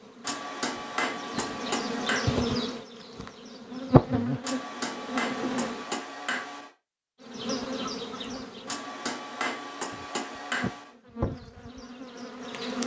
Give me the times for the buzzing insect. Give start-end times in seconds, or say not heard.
0.0-5.9, 7.2-12.8.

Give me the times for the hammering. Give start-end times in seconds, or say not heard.
0.2-2.5, 4.4-6.7, 8.7-10.9.